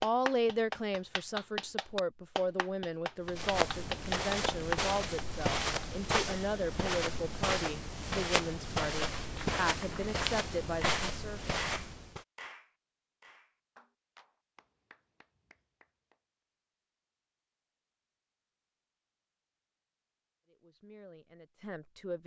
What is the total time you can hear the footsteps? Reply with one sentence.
You can hear the footsteps for 9 seconds altogether.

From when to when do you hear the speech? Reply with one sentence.
You can hear the speech from 0.0 to 11.5 s and from 20.5 to 22.2 s.